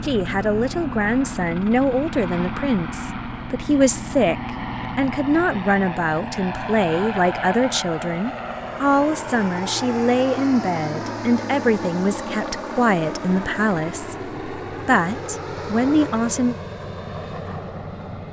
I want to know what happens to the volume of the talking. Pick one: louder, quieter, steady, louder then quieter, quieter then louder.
steady.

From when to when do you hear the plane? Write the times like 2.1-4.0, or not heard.
0.0-18.2.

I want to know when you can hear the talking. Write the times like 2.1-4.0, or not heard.
0.0-16.6.